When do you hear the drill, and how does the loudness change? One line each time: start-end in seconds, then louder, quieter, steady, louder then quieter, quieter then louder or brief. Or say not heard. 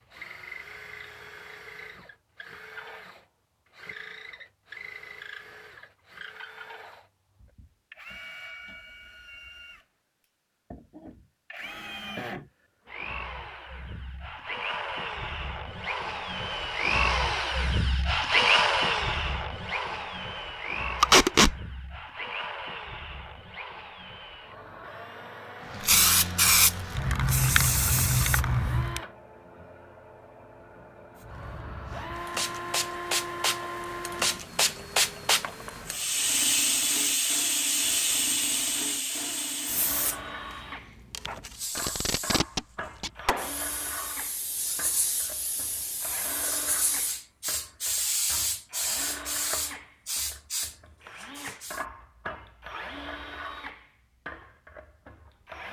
0.0-55.6 louder then quieter.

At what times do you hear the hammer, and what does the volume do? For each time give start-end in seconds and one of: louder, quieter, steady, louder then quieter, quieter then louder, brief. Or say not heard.
not heard.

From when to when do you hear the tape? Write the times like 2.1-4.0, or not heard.
21.0-21.6, 41.8-43.1.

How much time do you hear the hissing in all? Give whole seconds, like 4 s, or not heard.
24 s.